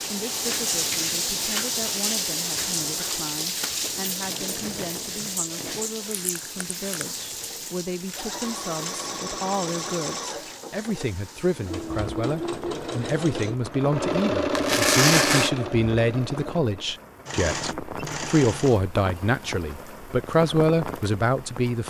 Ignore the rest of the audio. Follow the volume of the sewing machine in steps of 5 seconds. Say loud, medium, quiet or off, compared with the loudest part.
quiet, medium, loud, loud, off.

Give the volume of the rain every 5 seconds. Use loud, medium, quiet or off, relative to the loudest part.
loud, medium, quiet, medium, medium.